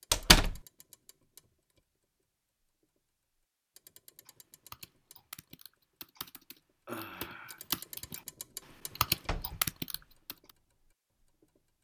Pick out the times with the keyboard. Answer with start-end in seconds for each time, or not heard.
4.2-8.2, 8.9-10.5.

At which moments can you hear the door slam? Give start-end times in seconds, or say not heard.
0.1-0.6, 9.1-10.1.